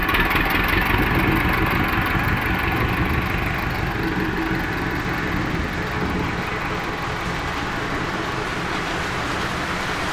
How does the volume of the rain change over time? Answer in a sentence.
The loudness of the rain goes up.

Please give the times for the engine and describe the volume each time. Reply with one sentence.
The engine can be heard from 0.0 to 10.0 s, getting quieter.